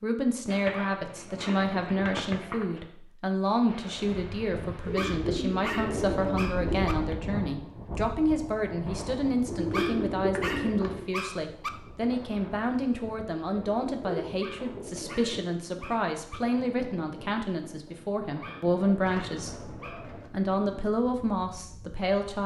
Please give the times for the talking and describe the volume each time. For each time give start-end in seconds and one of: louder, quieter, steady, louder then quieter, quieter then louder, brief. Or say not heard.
0.0-22.4 steady.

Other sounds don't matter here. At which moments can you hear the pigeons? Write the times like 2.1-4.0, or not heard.
0.5-2.9, 4.8-6.9, 9.4-11.1, 13.6-15.3, 18.9-20.3.